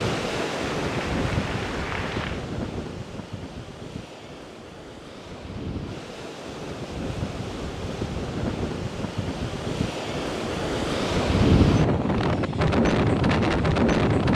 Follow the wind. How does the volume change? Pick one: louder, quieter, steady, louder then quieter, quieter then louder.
quieter then louder.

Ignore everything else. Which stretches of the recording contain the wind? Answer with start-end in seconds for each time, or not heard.
0.0-14.3.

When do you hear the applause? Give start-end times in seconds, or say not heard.
0.2-2.5.